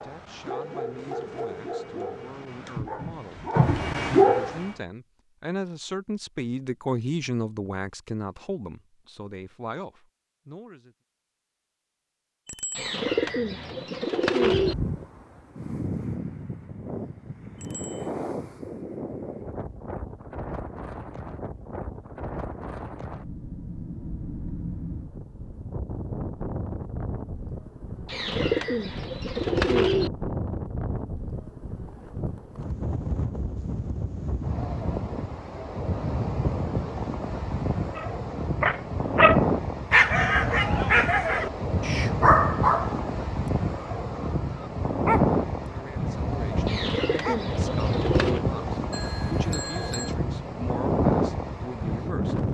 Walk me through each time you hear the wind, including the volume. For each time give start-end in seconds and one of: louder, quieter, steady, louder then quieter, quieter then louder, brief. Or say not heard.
14.4-52.4 louder.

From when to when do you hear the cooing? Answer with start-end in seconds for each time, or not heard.
12.8-14.8, 28.1-30.1, 46.6-48.5.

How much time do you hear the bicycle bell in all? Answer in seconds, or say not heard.
2 s.